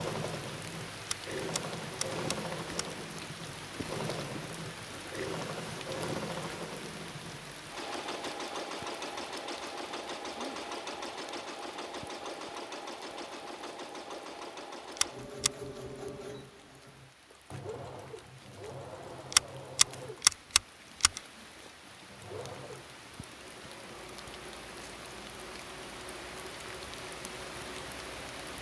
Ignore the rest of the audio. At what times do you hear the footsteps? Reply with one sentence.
You can't hear the footsteps here.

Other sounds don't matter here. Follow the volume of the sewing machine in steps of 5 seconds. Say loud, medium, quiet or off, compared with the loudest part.
loud, loud, loud, medium, medium, medium.